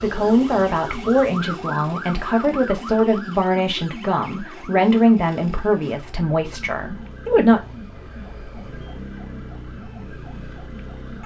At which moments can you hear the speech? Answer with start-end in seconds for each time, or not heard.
0.0-7.6.